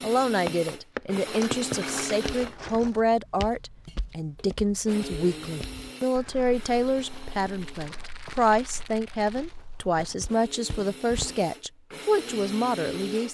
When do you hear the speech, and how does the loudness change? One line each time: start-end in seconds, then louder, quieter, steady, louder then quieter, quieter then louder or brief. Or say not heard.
0.0-13.2 steady.